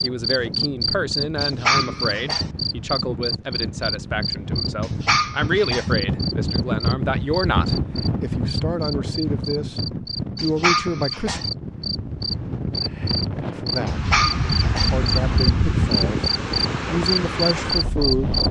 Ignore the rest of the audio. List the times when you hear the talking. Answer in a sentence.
You can hear the talking from 0.0 to 11.4 s, from 13.6 to 14.0 s and from 14.9 to 18.4 s.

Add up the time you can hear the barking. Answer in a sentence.
You can hear the barking for 4 seconds altogether.